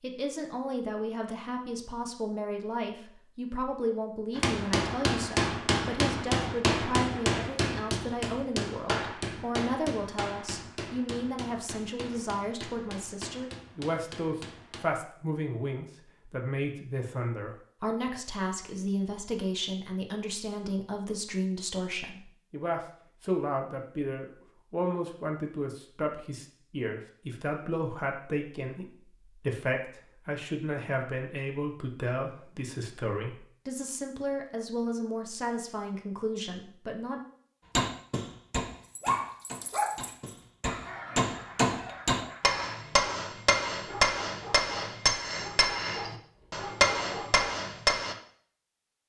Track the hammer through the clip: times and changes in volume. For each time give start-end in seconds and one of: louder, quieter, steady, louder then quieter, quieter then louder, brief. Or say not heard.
4.3-14.8 quieter
37.8-48.1 louder.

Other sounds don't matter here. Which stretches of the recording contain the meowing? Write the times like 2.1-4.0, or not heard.
not heard.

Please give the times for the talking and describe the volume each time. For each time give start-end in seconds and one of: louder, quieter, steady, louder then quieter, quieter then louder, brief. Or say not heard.
0.0-37.2 steady.